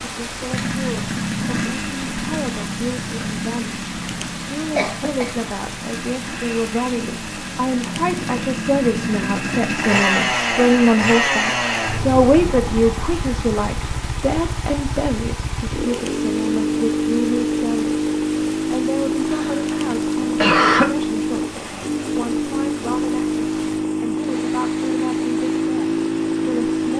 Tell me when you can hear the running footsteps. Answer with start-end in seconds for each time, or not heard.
not heard.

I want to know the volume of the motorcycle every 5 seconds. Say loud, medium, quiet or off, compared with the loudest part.
medium, medium, loud, loud, loud, loud.